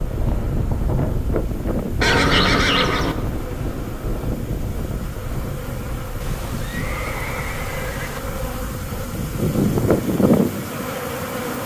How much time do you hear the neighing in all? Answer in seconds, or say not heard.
3 s.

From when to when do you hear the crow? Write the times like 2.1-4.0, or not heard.
not heard.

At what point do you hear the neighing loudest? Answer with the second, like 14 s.
2 s.